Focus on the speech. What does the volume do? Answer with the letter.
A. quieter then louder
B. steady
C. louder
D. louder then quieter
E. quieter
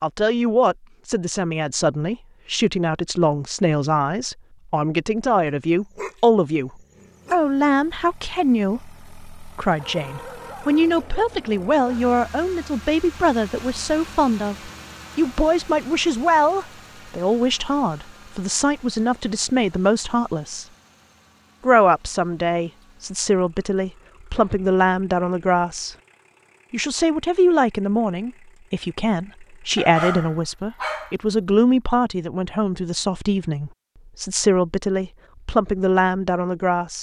B.